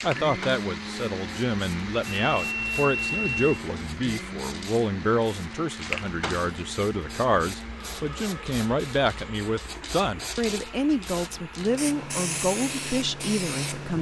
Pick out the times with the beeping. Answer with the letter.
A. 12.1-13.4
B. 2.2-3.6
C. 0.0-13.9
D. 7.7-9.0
B.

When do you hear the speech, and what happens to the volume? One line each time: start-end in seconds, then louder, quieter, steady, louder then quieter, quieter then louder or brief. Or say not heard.
0.0-13.9 steady.